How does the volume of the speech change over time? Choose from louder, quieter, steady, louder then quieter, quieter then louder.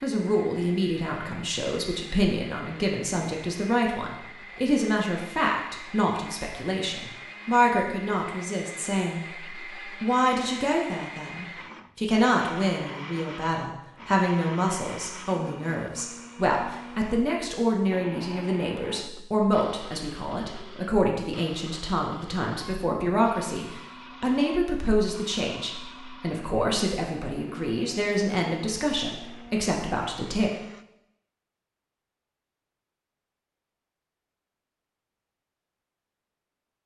steady.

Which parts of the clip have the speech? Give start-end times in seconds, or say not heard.
0.0-30.5.